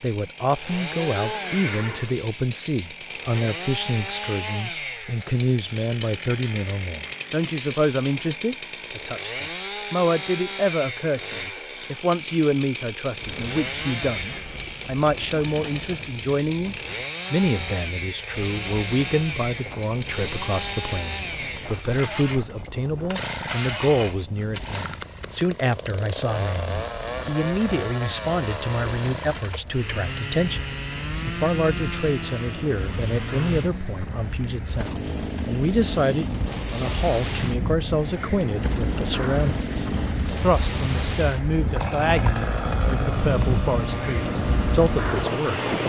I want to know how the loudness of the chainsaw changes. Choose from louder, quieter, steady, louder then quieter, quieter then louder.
steady.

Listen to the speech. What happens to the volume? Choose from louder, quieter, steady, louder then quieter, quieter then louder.
steady.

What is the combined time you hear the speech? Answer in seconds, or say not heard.
46 s.